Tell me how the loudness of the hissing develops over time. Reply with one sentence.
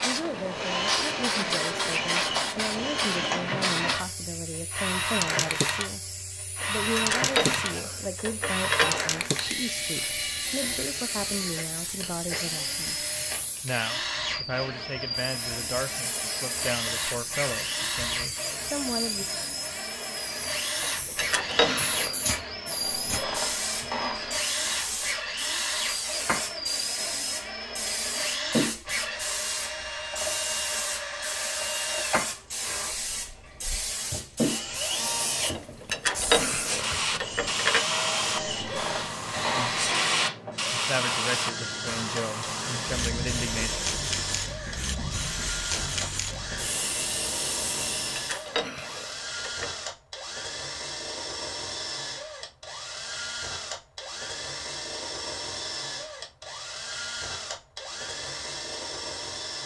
The loudness of the hissing goes down, then up.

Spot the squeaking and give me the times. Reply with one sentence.
You can hear the squeaking from 22.6 to 24.4 s and from 38.2 to 40.0 s.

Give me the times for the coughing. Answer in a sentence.
The coughing can't be heard in this clip.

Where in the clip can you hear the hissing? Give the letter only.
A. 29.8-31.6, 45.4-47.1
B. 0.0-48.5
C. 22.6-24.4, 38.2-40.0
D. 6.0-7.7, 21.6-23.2
B.